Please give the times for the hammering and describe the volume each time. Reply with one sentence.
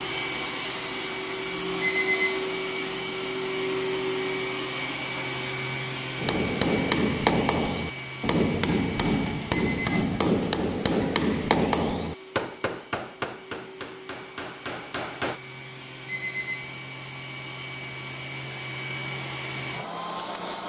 You can hear the hammering from 6.2 to 15.4 s, getting quieter.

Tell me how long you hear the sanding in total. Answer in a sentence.
You can't hear the sanding here.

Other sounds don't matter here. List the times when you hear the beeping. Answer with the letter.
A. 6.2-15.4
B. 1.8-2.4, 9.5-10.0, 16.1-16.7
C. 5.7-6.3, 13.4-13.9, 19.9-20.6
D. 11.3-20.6
B.